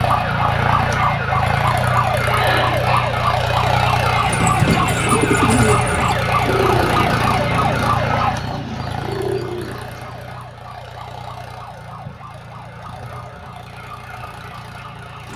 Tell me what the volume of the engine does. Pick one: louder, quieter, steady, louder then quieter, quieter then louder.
quieter.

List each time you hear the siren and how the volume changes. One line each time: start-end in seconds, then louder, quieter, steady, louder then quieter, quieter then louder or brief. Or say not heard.
0.0-15.3 quieter.